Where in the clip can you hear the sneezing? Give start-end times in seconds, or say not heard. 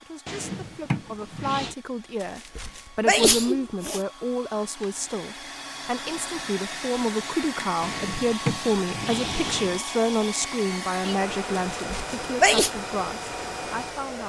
2.2-4.0, 11.8-12.7.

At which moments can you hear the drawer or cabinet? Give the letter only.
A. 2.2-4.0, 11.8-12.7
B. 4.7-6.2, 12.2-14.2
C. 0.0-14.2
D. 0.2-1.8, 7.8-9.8
D.